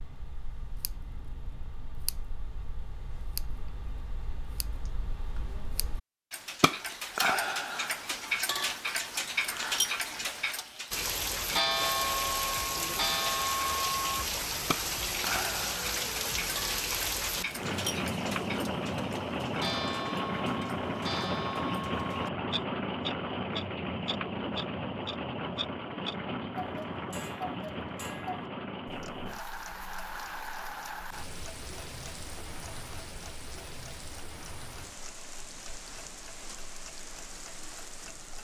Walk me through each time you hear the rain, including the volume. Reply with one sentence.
The rain can be heard from 10.9 to 38.3 s, getting quieter.